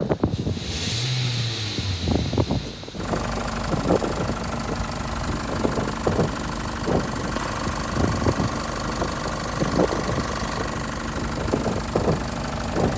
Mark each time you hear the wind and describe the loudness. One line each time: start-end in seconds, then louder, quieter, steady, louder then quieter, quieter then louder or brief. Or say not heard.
0.0-12.9 steady.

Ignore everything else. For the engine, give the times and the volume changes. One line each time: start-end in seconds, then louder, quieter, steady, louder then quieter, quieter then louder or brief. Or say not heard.
0.0-12.9 steady.